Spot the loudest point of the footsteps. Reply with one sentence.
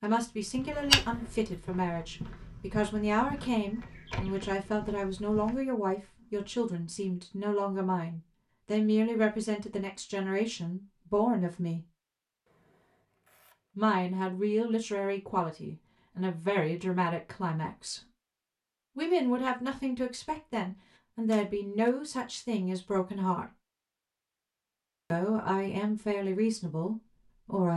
The loudest moment of the footsteps is at 1 second.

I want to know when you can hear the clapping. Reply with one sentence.
You can't hear the clapping here.